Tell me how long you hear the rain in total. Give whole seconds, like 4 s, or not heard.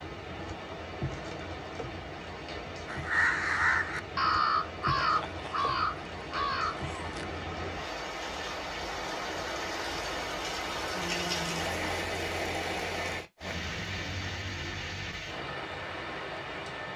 17 s.